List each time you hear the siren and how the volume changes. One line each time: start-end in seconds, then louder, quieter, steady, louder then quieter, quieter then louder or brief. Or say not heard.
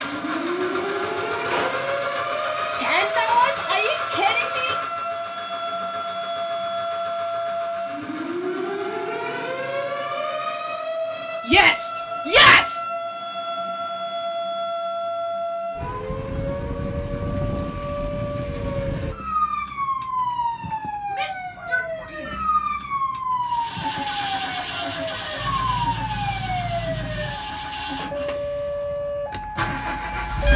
0.0-30.5 steady.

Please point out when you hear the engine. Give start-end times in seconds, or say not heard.
0.0-8.7, 23.4-30.5.